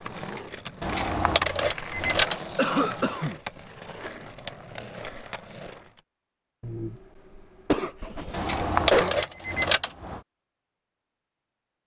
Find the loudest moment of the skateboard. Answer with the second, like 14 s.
2 s.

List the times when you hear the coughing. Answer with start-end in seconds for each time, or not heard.
2.5-3.4, 6.6-9.2.